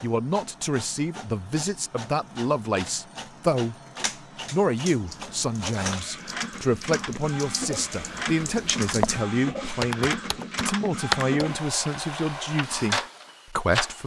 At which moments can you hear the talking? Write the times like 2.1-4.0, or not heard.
0.0-3.8, 4.5-14.0.